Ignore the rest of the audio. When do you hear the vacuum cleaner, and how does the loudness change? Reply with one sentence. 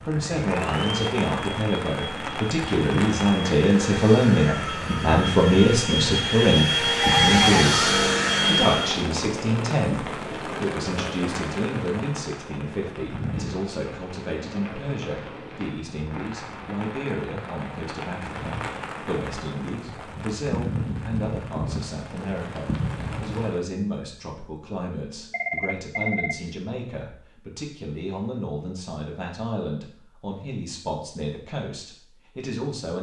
You can hear the vacuum cleaner from 0.1 to 9.1 s, getting louder.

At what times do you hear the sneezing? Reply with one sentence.
The sneezing can't be heard in this clip.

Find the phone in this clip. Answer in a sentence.
The phone can be heard from 7.0 to 7.8 s and from 25.3 to 26.4 s.